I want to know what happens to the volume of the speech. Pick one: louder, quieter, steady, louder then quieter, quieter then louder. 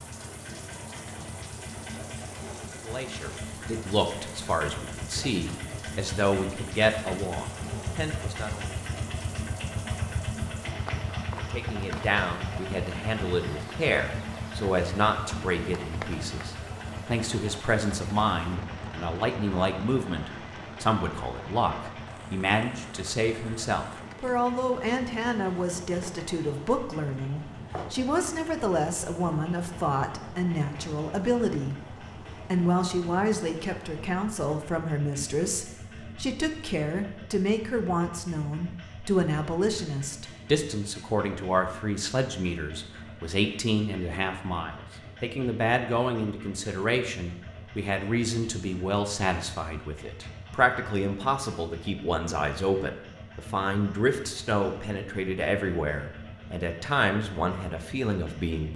steady.